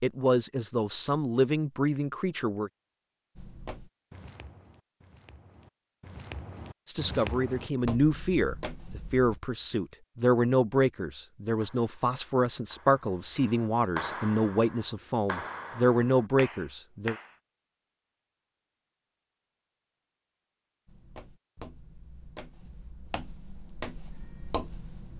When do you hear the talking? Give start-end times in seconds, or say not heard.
0.0-2.7, 6.8-17.1.